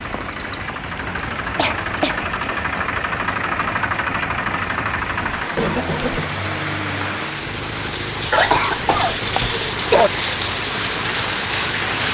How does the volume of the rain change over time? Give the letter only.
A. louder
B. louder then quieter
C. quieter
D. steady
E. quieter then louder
A.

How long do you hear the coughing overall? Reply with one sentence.
You can hear the coughing for 3 seconds altogether.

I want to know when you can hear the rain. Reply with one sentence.
You can hear the rain from 0.0 to 12.0 s.